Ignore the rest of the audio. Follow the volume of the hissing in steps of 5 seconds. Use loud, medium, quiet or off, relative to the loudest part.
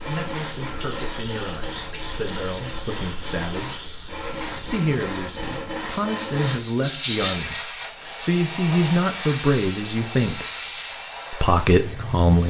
medium, loud, loud.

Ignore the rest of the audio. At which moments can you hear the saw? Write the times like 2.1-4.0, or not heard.
0.0-6.7.